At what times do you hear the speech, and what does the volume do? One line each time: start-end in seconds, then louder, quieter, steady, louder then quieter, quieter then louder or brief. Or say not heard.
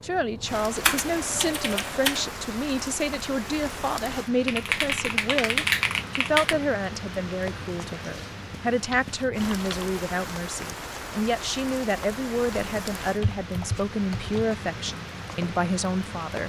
0.0-16.4 steady.